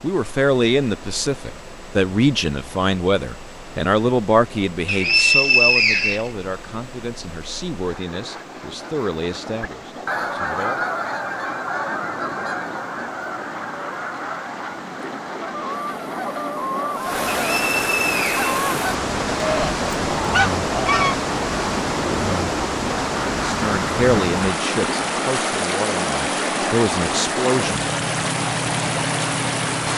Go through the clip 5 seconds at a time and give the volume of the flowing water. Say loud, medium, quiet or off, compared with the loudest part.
quiet, quiet, quiet, loud, loud, loud.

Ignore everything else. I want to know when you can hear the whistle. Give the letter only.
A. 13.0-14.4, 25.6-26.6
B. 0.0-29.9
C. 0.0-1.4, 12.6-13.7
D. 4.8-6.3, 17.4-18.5
D.